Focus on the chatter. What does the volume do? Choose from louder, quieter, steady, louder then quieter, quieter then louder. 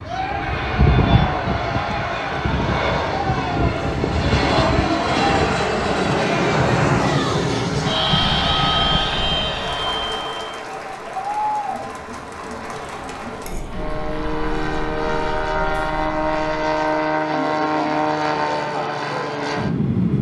quieter.